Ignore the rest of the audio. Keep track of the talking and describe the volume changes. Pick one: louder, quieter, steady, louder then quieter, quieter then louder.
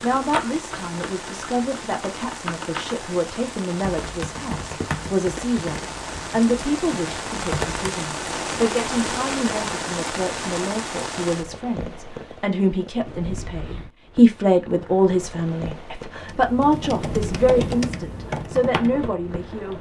louder.